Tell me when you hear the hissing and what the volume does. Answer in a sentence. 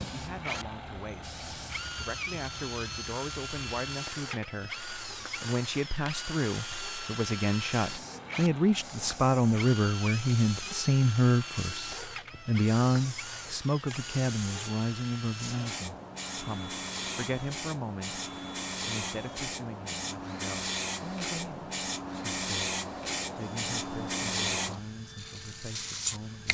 You can hear the hissing from 0.0 to 26.5 s, getting louder.